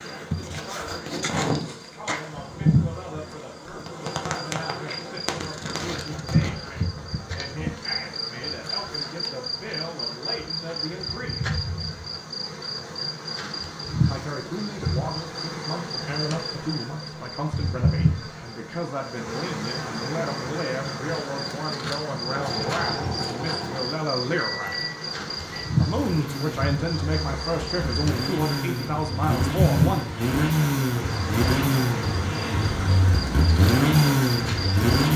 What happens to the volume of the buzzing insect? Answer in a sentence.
The volume of the buzzing insect stays about the same.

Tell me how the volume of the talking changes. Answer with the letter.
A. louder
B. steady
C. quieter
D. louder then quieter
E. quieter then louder
A.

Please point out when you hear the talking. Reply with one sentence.
The talking can be heard from 0.0 to 11.6 s, from 14.1 to 24.8 s and from 25.8 to 30.1 s.